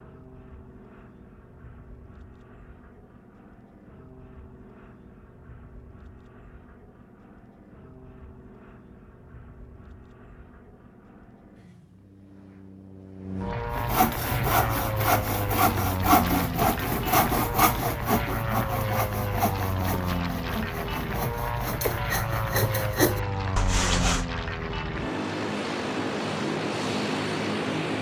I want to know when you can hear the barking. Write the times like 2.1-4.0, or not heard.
not heard.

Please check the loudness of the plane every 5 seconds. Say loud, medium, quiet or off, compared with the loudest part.
quiet, quiet, medium, loud, loud, loud.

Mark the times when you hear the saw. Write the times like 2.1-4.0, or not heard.
13.8-24.2.